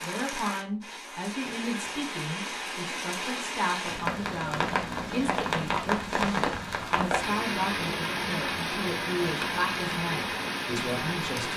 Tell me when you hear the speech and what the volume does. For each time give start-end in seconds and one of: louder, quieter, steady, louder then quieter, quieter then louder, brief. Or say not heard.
0.0-11.5 steady.